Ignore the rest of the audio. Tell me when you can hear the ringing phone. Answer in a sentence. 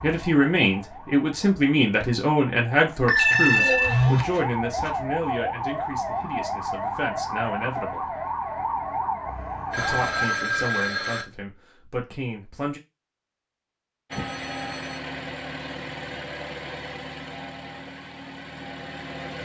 You can hear the ringing phone from 3.0 to 4.9 s, from 9.7 to 11.2 s and from 14.1 to 15.0 s.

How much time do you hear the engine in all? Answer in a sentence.
You can hear the engine for 5 seconds altogether.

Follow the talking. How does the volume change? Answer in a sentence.
The loudness of the talking goes down.